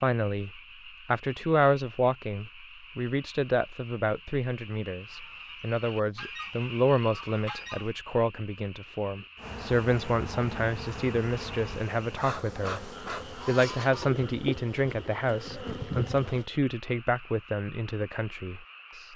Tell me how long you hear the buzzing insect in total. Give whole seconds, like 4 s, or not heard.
7 s.